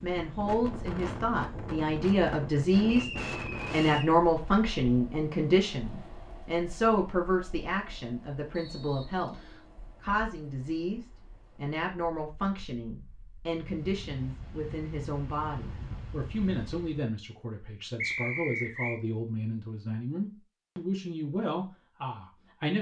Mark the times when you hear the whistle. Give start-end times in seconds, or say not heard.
2.9-4.2, 8.6-9.7, 18.0-19.0.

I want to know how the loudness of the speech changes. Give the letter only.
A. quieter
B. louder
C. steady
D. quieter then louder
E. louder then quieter
A.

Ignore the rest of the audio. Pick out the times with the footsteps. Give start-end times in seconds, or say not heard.
not heard.